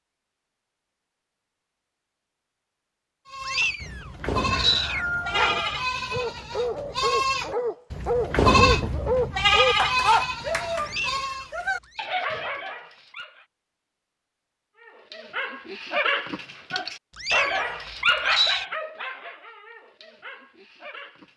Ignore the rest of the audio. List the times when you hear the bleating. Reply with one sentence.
The bleating can be heard from 3.2 to 11.5 s.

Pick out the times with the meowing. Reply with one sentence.
The meowing can be heard from 3.4 to 5.0 s, from 10.8 to 12.1 s and from 17.1 to 18.6 s.